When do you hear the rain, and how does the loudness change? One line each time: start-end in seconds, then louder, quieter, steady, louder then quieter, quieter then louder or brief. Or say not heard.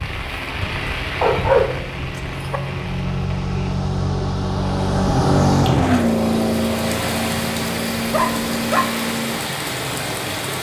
0.0-10.5 quieter then louder.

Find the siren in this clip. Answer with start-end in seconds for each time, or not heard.
not heard.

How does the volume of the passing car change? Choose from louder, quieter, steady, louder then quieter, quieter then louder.
louder then quieter.